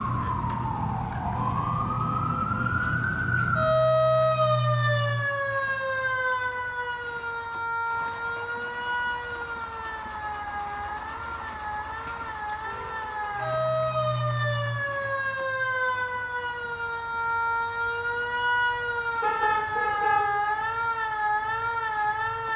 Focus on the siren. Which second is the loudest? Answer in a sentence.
The volume of the siren peaks at 4 seconds.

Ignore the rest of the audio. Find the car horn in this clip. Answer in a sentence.
The car horn can be heard from 1.2 to 3.0 s, from 12.6 to 13.4 s and from 19.2 to 20.2 s.